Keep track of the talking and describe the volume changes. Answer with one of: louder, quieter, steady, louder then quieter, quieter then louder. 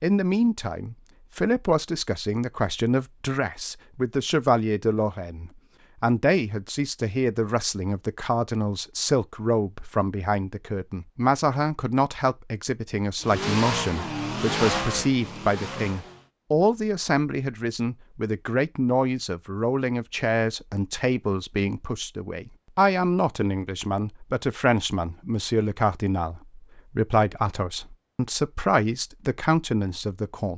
steady.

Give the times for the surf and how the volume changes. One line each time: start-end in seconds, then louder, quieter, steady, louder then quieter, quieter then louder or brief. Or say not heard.
not heard.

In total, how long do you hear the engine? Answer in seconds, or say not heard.
3 s.